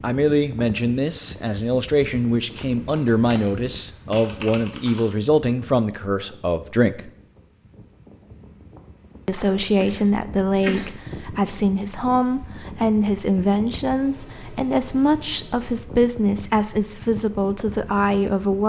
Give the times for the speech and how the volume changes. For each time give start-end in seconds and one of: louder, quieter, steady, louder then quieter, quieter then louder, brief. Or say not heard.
0.0-7.1 steady
9.2-18.6 steady.